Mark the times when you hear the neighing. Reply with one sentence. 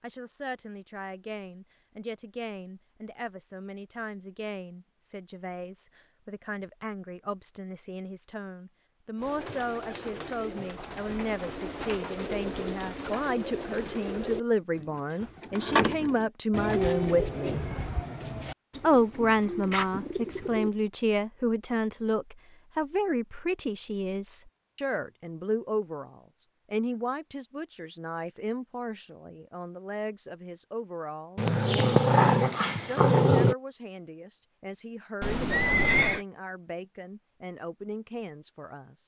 The neighing can be heard from 35.2 to 36.2 s.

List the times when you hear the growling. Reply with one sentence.
You can hear the growling from 31.4 to 33.5 s.